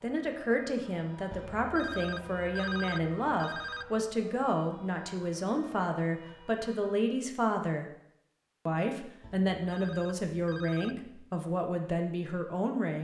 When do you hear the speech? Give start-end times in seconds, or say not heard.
0.0-7.8, 8.7-12.9.